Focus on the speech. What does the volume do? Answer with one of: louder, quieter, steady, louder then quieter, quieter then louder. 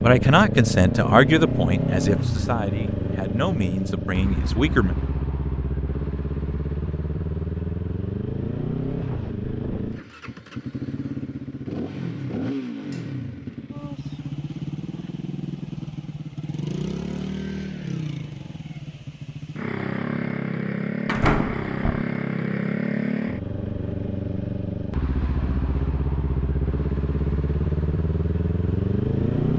quieter.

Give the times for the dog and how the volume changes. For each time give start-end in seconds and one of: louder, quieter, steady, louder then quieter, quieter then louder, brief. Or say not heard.
not heard.